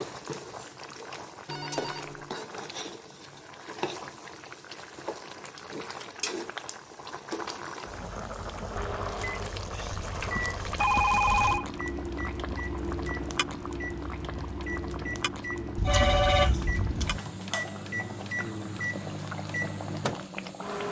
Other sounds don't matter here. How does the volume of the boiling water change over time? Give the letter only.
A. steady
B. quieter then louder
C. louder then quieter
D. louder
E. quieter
A.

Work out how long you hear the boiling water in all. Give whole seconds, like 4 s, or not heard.
21 s.